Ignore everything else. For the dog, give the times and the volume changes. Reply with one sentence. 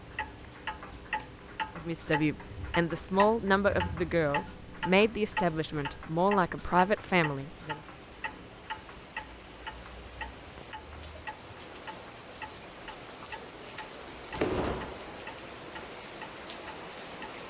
The dog can't be heard in this clip.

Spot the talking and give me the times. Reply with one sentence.
The talking can be heard from 1.8 to 7.8 s.